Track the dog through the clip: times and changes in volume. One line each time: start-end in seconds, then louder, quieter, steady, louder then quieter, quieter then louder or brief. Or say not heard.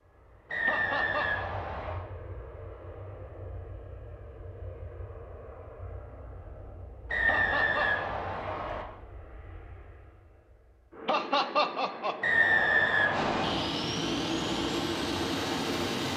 not heard.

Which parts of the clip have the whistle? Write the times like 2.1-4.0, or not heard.
0.5-2.0, 7.1-8.8, 12.2-13.7.